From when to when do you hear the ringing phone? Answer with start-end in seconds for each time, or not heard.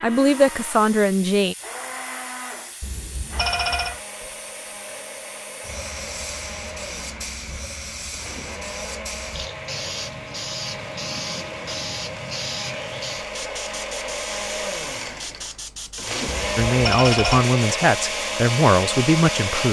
2.8-4.0, 16.3-17.4.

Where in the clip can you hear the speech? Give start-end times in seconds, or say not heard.
0.0-1.6, 16.6-19.6.